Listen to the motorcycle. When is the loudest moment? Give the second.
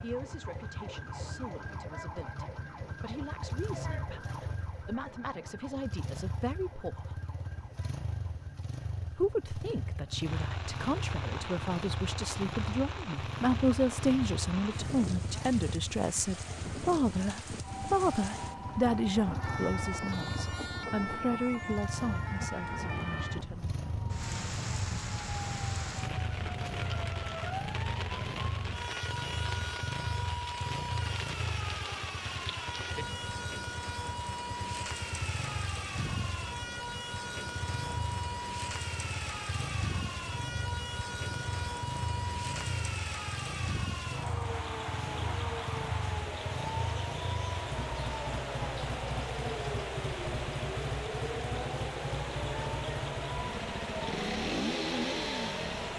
55 s.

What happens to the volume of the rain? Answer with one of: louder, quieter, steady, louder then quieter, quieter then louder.
steady.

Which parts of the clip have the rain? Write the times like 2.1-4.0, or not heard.
10.2-55.9.